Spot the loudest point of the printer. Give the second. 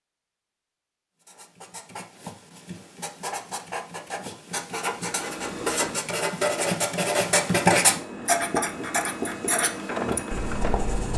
10 s.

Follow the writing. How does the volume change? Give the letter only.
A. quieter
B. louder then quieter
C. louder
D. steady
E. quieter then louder
B.